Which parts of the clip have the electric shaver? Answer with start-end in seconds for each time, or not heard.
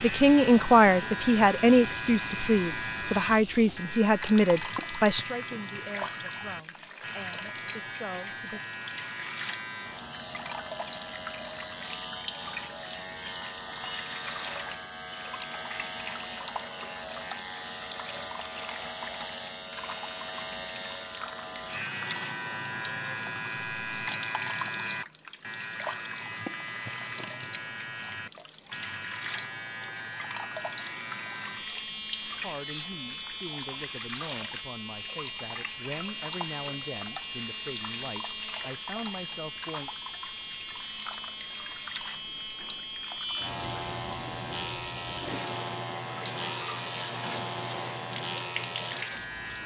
0.0-49.6.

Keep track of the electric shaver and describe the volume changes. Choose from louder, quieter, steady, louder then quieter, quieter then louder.
steady.